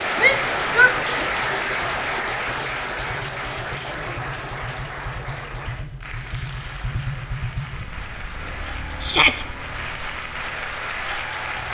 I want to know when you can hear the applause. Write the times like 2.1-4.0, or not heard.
0.0-11.6.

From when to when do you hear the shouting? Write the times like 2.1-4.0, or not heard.
0.1-1.2, 9.0-9.4.